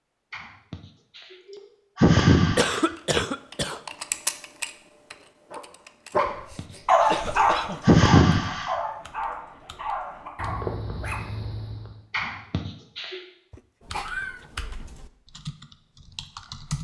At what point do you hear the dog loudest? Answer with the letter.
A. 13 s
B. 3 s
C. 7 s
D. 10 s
C.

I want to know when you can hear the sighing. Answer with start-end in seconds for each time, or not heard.
0.3-2.9, 6.2-8.8, 12.1-13.2.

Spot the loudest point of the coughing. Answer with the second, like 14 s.
3 s.